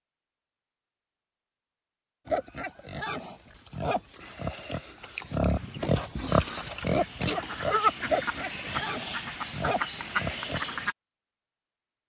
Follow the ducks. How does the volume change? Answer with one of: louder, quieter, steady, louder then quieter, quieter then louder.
louder.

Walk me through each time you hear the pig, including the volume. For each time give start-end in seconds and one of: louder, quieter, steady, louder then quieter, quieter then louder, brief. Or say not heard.
2.2-10.8 louder then quieter.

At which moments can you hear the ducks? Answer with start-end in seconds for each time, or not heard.
5.5-10.9.